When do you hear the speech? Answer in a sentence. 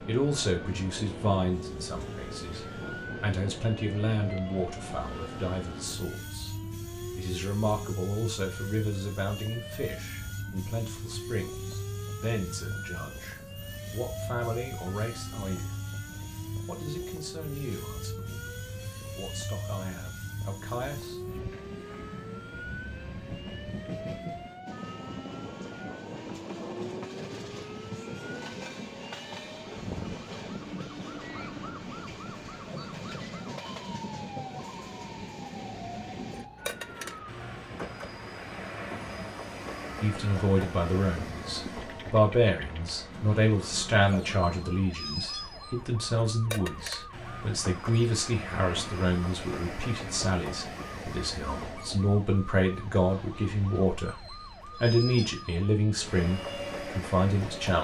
You can hear the speech from 0.1 to 15.8 s, from 16.6 to 21.4 s and from 40.0 to 57.7 s.